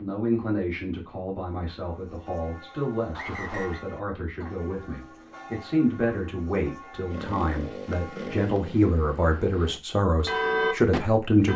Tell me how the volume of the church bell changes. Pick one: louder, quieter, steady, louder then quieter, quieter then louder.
louder.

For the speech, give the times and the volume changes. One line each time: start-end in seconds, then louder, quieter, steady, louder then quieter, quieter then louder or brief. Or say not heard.
0.0-11.5 louder.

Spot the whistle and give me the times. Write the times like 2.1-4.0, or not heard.
3.1-3.9, 7.9-8.6.